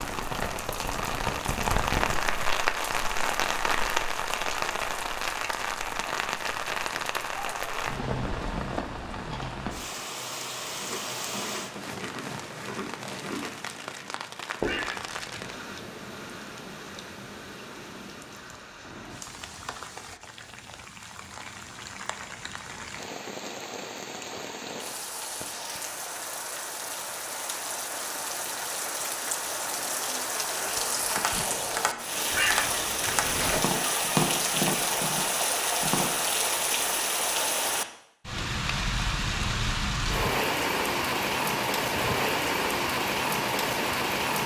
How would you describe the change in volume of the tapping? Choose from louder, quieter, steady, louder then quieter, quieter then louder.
louder then quieter.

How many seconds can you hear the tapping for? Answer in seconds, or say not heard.
5 s.